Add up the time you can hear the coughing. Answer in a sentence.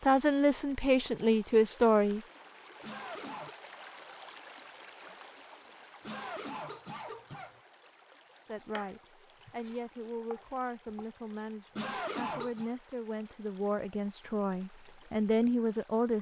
The coughing can be heard for 3 seconds in total.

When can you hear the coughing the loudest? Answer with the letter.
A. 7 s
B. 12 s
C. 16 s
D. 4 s
B.